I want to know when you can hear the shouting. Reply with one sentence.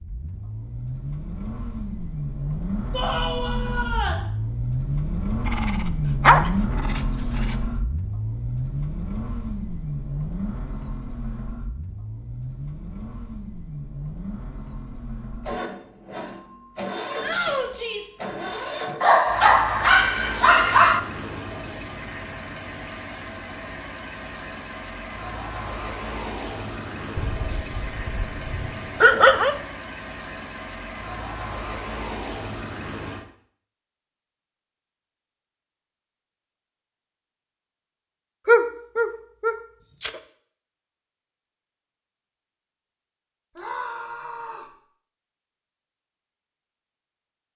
You can hear the shouting from 2.9 to 4.2 s, from 17.2 to 18.1 s and from 43.5 to 44.7 s.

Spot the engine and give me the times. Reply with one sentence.
The engine can be heard from 0.0 to 33.2 s.